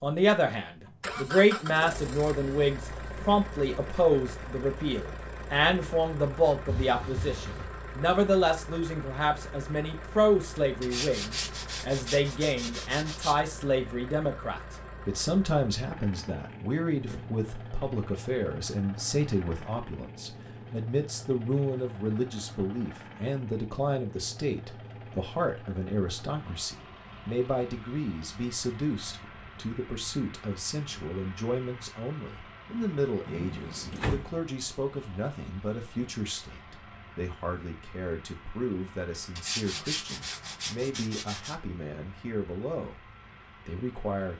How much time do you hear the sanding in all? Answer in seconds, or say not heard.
5 s.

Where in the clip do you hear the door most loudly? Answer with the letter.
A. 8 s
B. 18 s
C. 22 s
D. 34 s
D.